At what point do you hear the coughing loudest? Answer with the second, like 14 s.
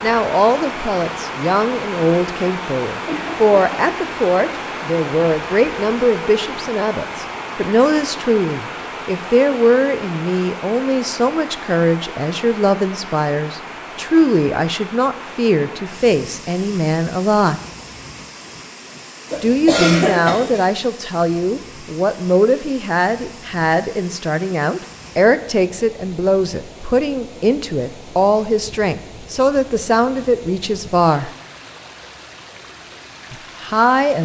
20 s.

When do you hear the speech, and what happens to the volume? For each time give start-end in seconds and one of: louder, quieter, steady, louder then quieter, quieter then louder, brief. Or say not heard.
0.0-17.6 steady
19.4-31.3 steady
33.3-34.2 brief.